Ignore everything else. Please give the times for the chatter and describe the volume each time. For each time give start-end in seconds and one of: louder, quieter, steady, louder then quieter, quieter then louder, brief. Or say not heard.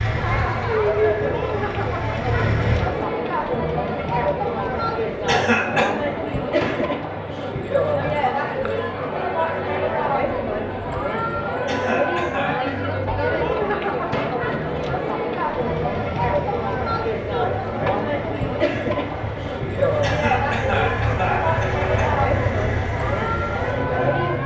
0.0-24.4 steady.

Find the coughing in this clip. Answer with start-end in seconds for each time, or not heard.
5.2-5.9, 11.7-12.8, 20.0-22.1.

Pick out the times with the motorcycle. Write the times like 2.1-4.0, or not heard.
0.0-3.0, 15.4-24.4.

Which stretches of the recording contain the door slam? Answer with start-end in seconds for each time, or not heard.
6.6-7.0, 14.1-14.5.